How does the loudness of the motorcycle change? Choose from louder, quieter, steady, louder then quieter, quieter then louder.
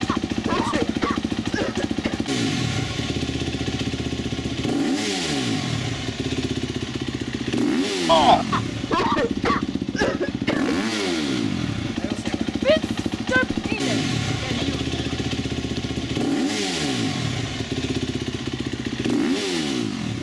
steady.